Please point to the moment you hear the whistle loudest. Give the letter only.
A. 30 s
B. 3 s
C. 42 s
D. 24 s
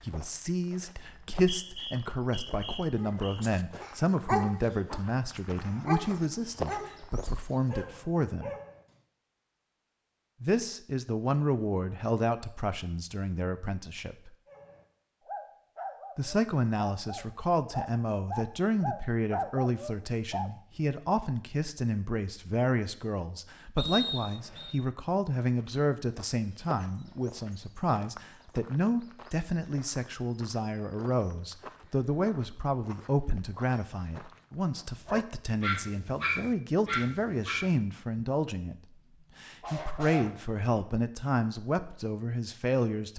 D.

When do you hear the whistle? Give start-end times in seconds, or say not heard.
1.1-3.4, 23.8-24.8.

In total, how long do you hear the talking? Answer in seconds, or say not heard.
39 s.